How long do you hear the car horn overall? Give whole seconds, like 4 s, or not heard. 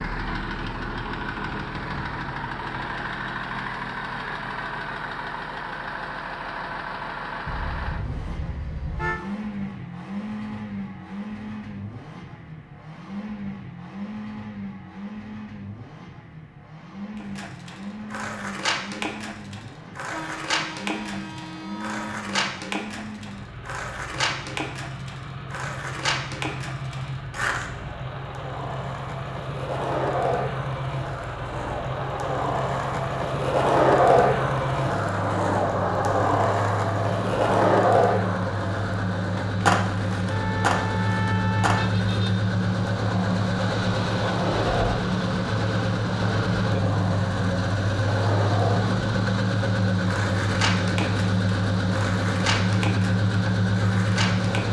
6 s.